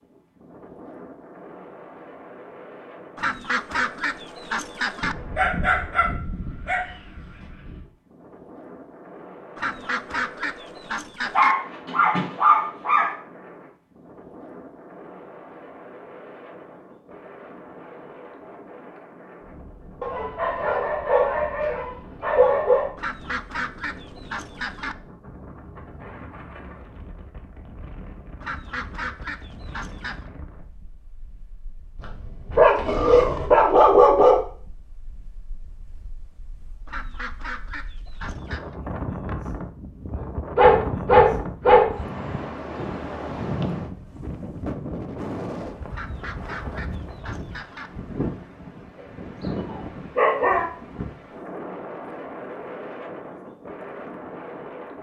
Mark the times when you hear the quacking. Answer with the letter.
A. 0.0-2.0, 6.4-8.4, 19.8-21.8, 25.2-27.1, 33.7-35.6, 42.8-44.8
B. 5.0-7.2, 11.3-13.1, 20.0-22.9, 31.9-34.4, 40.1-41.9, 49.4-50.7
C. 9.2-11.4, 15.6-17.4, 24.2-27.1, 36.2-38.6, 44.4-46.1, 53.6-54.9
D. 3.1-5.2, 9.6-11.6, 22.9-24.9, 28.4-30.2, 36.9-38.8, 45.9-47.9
D.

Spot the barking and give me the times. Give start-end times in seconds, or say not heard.
5.0-7.2, 11.3-13.1, 20.0-22.9, 31.9-34.4, 40.1-41.9, 49.4-50.7.